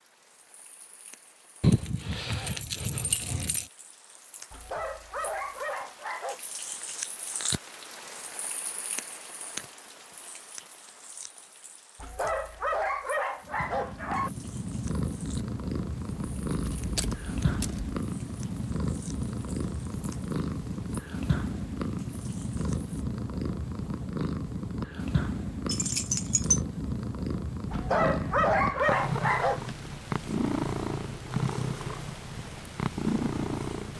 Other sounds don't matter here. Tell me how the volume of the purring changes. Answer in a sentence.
The volume of the purring stays about the same.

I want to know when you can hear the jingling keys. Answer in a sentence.
You can hear the jingling keys from 1.6 to 3.7 s, from 16.5 to 18.0 s and from 25.6 to 26.6 s.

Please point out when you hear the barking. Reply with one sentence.
You can hear the barking from 4.5 to 6.4 s, from 11.9 to 14.3 s and from 27.7 to 29.6 s.